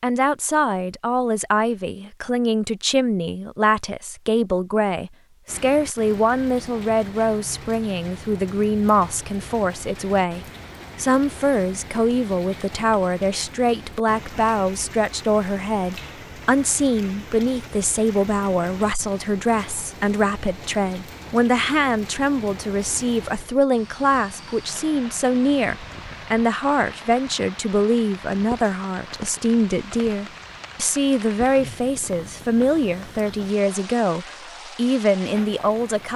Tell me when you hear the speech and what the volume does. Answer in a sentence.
You can hear the speech from 0.0 to 36.1 s, at a steady volume.